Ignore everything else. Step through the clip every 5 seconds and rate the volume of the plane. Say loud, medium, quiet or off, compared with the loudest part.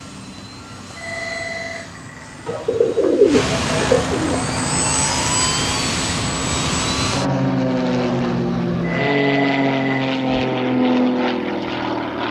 medium, loud, loud.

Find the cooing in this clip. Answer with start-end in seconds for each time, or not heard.
2.5-4.4.